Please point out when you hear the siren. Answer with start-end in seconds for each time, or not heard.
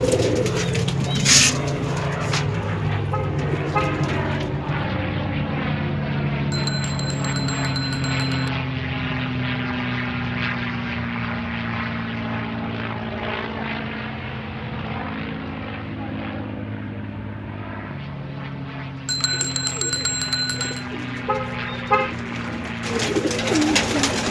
not heard.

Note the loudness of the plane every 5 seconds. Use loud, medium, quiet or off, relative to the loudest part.
loud, loud, loud, medium, medium.